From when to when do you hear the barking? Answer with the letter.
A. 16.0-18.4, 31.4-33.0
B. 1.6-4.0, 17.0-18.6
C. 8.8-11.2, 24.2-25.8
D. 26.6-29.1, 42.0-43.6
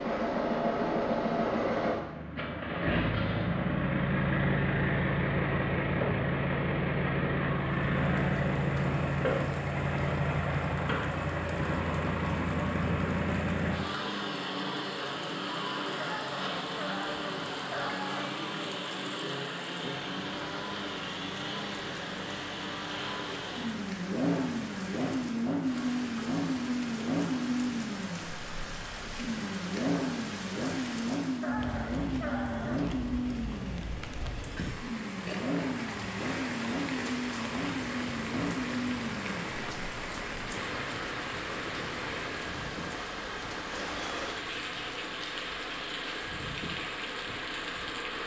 A.